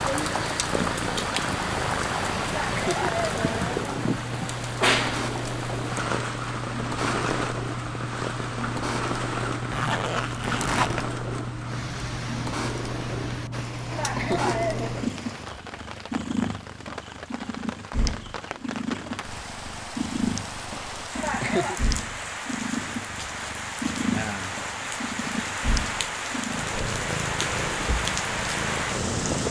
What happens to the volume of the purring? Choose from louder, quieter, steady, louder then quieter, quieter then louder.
steady.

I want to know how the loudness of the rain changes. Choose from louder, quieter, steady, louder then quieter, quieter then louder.
quieter then louder.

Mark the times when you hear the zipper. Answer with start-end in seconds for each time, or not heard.
9.7-11.1.